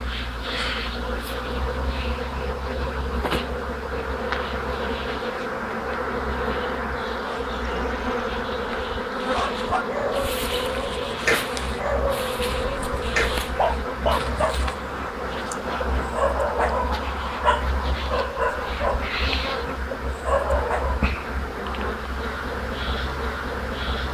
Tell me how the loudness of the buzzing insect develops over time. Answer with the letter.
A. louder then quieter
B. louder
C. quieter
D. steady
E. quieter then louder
D.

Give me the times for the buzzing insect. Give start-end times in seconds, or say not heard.
0.0-24.0.